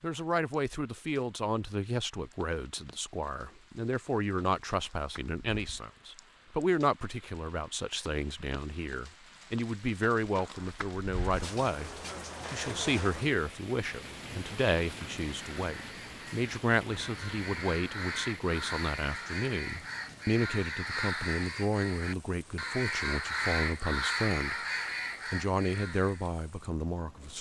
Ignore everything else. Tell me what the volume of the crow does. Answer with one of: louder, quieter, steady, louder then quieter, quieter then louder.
louder.